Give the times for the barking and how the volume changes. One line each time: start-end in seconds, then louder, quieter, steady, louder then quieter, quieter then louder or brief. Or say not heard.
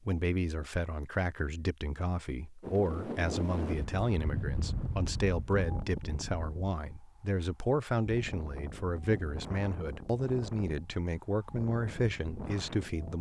not heard.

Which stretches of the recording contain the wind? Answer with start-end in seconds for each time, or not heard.
2.6-13.1.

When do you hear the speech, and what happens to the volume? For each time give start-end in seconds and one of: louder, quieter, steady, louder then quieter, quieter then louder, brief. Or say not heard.
0.1-13.1 steady.